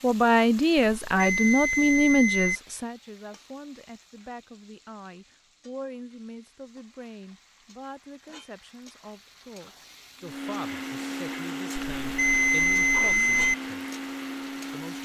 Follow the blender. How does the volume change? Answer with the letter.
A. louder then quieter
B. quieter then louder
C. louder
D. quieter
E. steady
E.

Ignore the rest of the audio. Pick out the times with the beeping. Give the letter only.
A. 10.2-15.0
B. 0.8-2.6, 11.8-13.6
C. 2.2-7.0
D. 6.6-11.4
B.